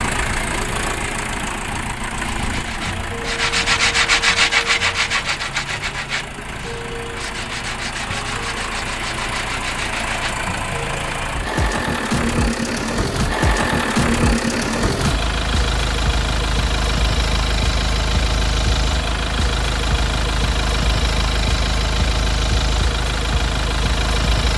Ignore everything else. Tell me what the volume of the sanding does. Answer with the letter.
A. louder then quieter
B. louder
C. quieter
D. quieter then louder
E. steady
C.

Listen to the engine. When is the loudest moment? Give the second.
14 s.